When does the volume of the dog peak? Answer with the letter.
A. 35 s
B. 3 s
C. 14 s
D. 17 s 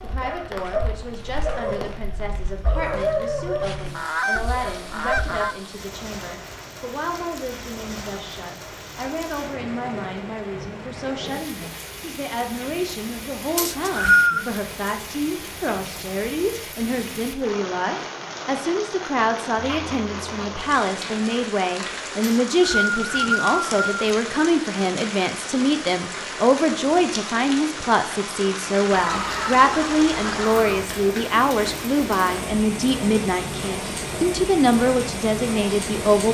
B.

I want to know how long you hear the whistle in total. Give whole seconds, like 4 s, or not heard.
3 s.